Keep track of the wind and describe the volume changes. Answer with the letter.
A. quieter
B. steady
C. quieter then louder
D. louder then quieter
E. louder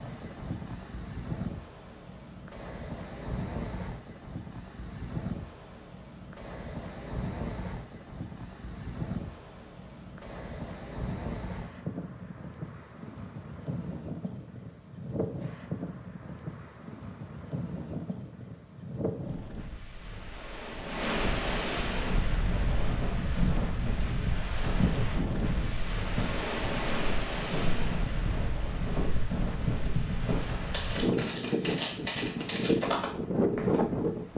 E.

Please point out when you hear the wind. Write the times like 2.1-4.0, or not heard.
0.0-34.3.